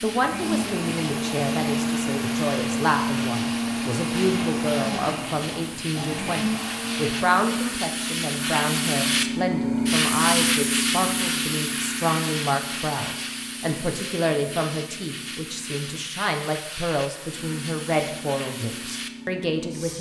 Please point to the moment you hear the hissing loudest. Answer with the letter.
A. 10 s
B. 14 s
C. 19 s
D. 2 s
A.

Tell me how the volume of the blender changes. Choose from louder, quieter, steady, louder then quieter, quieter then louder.
steady.